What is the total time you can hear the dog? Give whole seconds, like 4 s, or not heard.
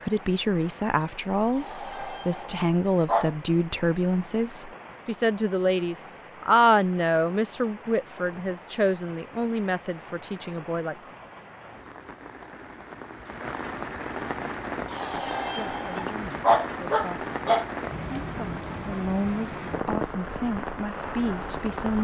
5 s.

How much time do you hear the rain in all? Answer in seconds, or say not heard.
22 s.